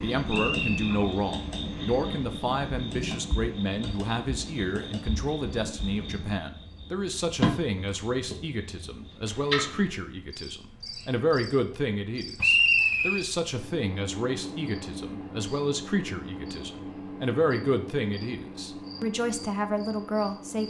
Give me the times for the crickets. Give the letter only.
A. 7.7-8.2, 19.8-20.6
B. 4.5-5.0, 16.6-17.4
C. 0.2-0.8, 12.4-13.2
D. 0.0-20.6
D.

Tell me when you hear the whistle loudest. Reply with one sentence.
The loudest moment of the whistle is at 13 seconds.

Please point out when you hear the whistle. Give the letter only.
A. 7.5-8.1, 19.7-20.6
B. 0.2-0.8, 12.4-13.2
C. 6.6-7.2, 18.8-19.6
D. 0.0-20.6
B.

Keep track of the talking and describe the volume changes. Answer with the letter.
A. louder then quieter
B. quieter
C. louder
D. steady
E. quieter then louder
D.